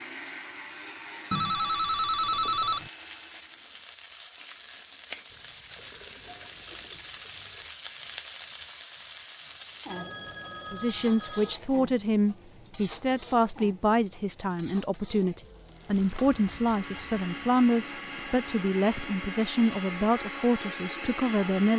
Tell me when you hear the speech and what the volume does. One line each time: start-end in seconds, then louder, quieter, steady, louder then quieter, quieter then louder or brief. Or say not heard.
10.7-21.7 steady.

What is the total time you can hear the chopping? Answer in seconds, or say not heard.
not heard.